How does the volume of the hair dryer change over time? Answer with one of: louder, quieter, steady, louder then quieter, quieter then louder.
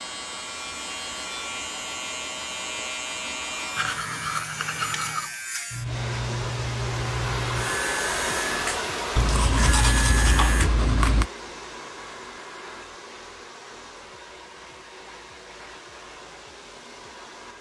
louder then quieter.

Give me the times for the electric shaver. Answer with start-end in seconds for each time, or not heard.
0.0-10.7.